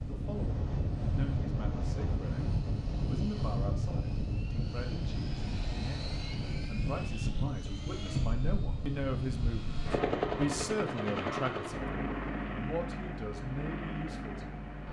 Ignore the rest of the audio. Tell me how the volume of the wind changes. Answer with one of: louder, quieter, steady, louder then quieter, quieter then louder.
quieter.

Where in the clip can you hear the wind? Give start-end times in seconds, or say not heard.
0.0-10.8.